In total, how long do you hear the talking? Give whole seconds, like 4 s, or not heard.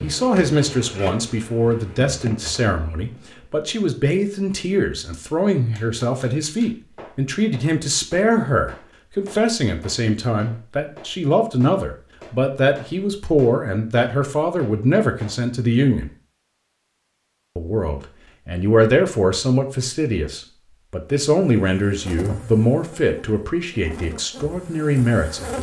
24 s.